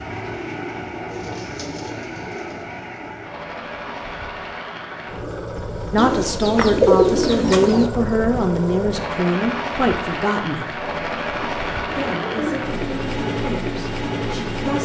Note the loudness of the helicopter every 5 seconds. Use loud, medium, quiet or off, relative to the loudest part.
medium, loud, loud.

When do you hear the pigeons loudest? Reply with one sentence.
The volume of the pigeons peaks at 7 seconds.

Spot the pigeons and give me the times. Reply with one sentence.
The pigeons can be heard from 1.1 to 2.6 s, from 6.0 to 7.9 s and from 11.3 to 12.9 s.